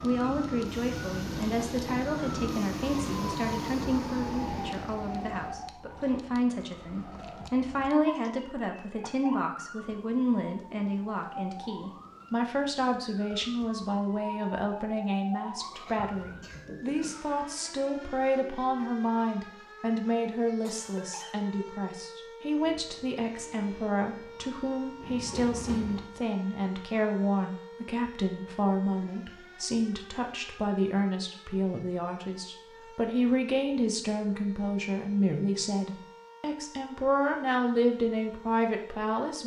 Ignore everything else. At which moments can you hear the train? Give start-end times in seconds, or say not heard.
0.0-5.5, 22.6-26.1.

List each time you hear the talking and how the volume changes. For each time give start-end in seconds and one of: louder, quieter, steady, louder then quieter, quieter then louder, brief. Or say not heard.
0.0-39.4 steady.